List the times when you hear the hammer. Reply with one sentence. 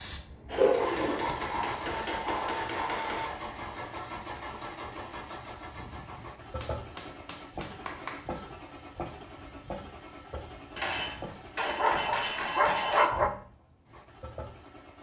You can hear the hammer from 0.7 to 3.3 s, from 6.6 to 8.2 s and from 10.8 to 13.1 s.